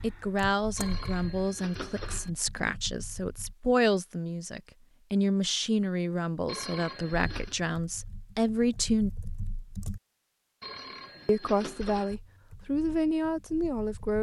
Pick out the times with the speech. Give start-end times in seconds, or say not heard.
0.0-9.1, 11.2-14.1.